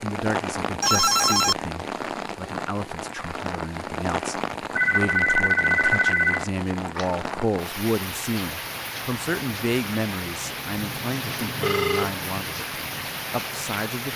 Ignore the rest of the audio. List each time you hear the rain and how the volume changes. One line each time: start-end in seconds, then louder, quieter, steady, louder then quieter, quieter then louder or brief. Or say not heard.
0.0-14.1 steady.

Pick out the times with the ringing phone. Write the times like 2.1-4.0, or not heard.
0.8-1.6, 4.8-7.1, 11.6-12.2.